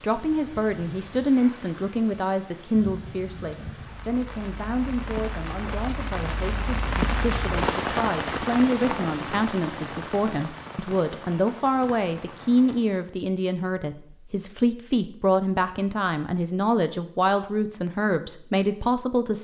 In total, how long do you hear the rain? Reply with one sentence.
You can hear the rain for 13 seconds altogether.